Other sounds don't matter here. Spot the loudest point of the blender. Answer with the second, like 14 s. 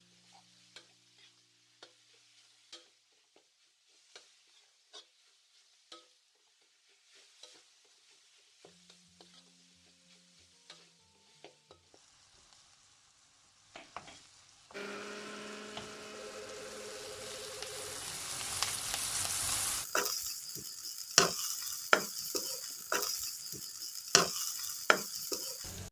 15 s.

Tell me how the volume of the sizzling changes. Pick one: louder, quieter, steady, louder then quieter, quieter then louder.
louder.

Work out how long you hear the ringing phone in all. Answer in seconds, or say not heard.
2 s.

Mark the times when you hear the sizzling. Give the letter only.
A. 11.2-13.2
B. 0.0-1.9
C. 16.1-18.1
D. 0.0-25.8
D.